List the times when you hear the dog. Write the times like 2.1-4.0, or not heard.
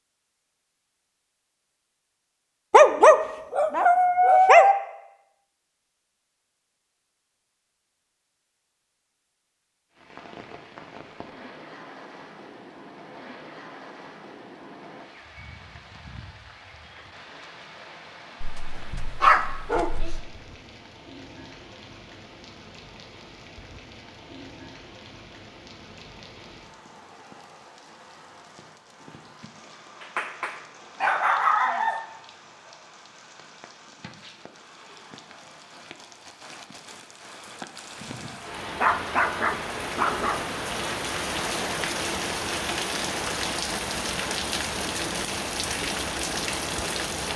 2.7-4.8, 18.4-20.2, 30.0-32.0, 38.8-40.5.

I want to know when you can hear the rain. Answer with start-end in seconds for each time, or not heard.
9.9-47.3.